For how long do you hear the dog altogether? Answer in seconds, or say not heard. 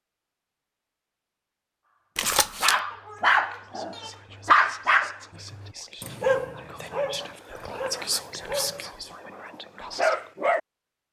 8 s.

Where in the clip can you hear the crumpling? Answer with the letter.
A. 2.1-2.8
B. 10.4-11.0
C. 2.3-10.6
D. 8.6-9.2
A.